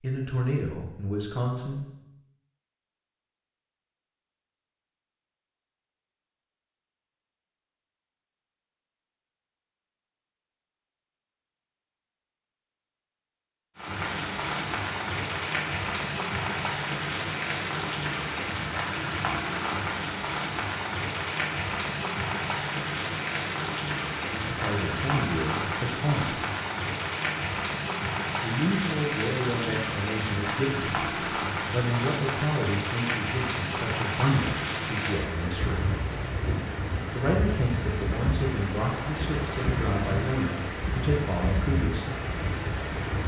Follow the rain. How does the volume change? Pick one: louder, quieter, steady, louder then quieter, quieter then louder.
steady.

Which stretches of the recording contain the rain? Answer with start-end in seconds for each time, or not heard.
13.8-43.2.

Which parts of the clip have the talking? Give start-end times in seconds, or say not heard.
0.0-1.9, 24.3-26.4, 28.4-35.8, 37.1-42.2.